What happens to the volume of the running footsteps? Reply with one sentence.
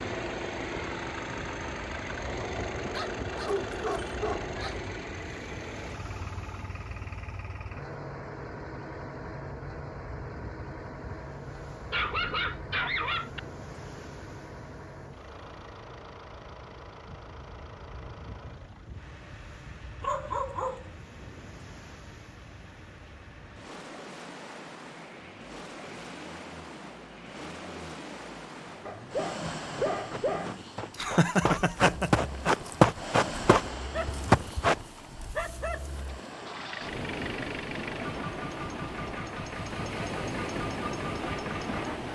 The loudness of the running footsteps goes up.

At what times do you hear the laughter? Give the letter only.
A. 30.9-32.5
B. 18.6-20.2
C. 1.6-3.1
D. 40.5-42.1
A.